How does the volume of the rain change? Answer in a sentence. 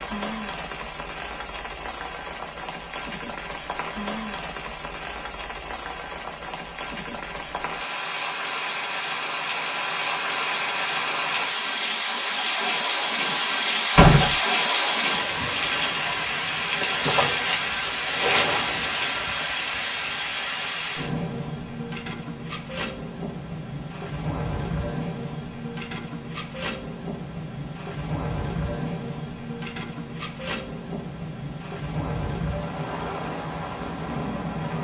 The loudness of the rain goes up, then down.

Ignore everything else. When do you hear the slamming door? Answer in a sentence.
You can hear the slamming door from 13.9 to 14.3 s.